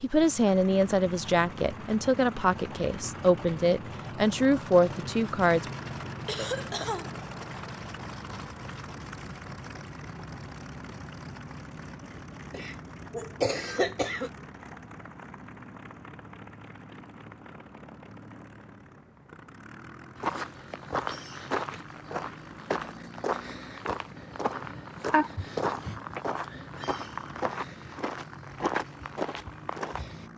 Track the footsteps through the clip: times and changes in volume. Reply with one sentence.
You can hear the footsteps from 20.1 to 30.3 s, at a steady volume.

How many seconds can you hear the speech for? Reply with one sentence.
You can hear the speech for 6 seconds altogether.